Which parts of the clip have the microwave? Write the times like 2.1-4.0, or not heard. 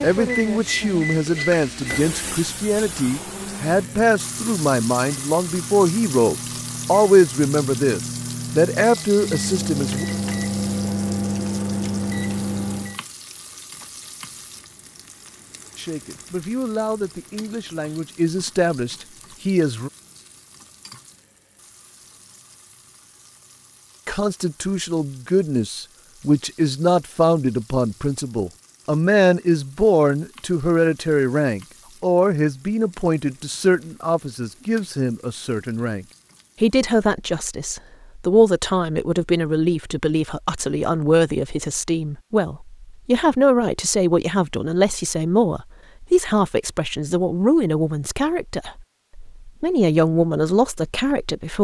0.0-13.0.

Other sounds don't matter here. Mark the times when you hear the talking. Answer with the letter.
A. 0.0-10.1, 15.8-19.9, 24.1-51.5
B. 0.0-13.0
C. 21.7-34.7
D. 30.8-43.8
A.